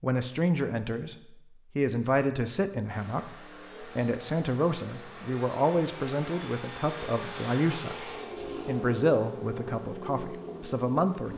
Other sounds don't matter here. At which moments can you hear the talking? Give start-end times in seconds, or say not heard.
0.0-11.3.